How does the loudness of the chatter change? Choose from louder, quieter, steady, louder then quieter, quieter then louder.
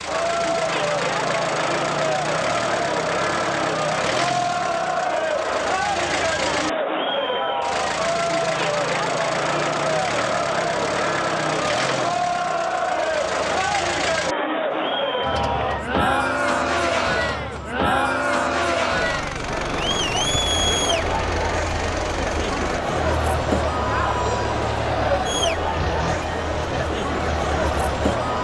steady.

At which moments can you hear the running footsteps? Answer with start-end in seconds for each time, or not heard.
not heard.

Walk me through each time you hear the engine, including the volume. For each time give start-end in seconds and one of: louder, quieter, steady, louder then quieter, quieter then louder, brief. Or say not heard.
0.0-28.3 steady.